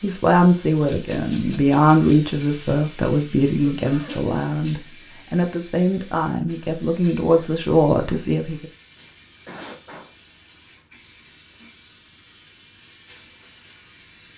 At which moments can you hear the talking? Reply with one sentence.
You can hear the talking from 0.0 to 8.7 s.